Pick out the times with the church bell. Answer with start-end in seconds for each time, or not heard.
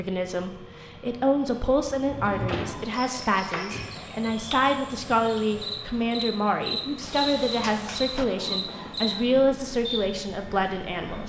not heard.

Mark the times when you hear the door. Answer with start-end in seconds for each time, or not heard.
1.9-2.9, 7.0-8.2.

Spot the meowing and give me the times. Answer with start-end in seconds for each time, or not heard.
not heard.